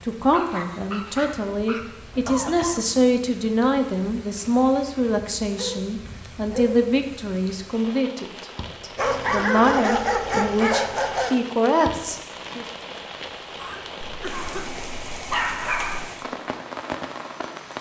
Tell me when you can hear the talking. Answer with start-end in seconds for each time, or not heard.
0.1-12.7.